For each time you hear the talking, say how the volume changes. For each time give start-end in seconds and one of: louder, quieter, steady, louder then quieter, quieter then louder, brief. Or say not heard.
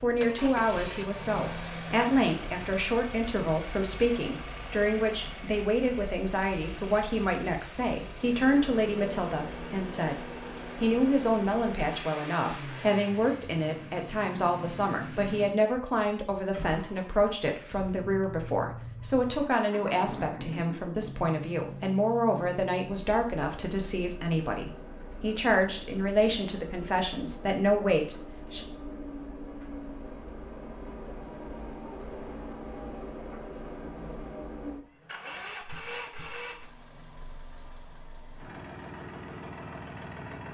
0.0-28.6 steady.